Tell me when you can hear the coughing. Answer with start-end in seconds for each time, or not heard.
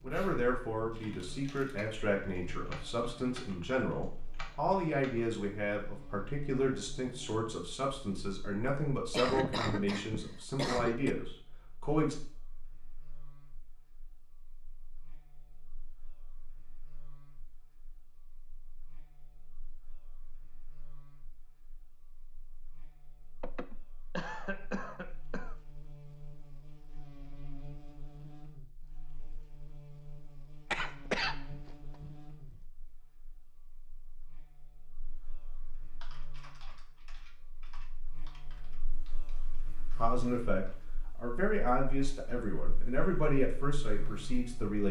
8.7-11.2, 23.4-25.6, 30.7-32.6.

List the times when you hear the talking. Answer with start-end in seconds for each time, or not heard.
0.0-12.2, 40.0-44.8.